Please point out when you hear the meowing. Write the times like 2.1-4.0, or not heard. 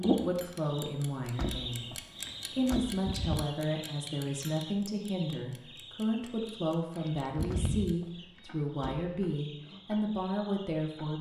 2.9-3.5, 7.0-8.4.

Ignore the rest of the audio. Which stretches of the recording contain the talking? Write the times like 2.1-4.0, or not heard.
0.0-11.1.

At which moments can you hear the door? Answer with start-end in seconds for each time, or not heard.
1.2-2.9, 7.3-9.1.